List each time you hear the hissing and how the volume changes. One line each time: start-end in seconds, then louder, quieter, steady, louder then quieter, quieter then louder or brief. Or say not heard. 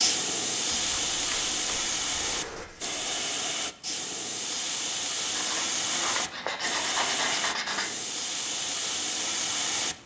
0.0-9.9 steady.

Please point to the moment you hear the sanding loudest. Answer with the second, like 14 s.
7 s.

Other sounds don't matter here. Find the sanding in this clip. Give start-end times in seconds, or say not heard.
0.7-3.0, 5.3-7.9.